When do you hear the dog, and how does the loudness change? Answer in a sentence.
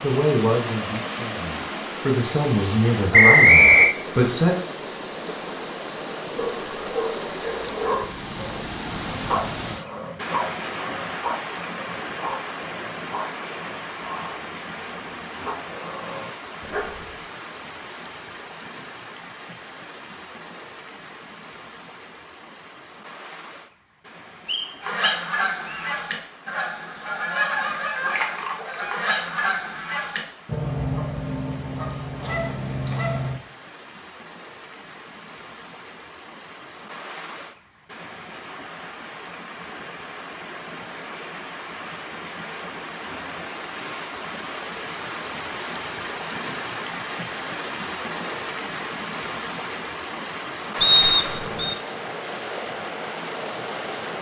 You can hear the dog from 6.3 to 17.1 s, getting quieter.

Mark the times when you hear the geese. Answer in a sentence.
You can hear the geese from 24.8 to 33.4 s.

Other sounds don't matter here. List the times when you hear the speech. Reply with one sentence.
You can hear the speech from 0.0 to 4.5 s.